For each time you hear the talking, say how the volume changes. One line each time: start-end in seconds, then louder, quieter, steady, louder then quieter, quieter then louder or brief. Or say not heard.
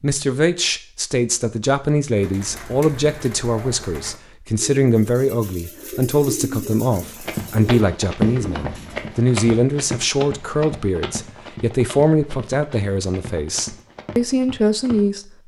0.0-15.3 steady.